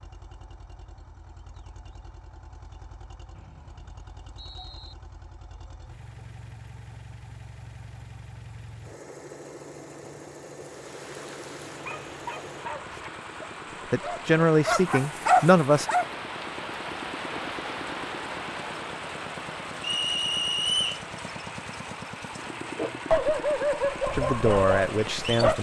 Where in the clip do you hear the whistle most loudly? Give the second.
21 s.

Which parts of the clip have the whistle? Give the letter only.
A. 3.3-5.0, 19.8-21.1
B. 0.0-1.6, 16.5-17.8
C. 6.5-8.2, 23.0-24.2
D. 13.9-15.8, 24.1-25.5
A.